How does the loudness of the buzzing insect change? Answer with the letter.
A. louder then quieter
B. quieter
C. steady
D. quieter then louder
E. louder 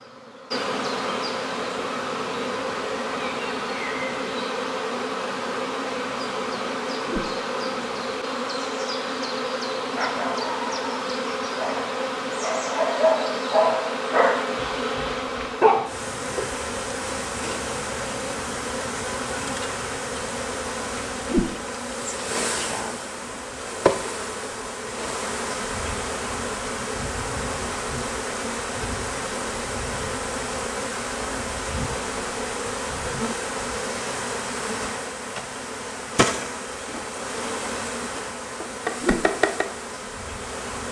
C.